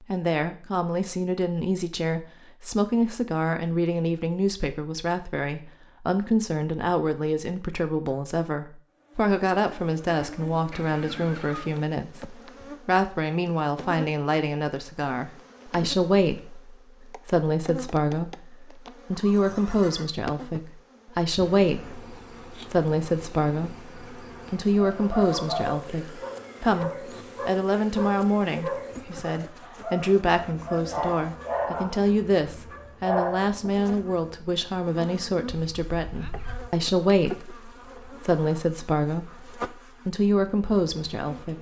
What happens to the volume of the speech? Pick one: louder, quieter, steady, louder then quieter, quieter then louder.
steady.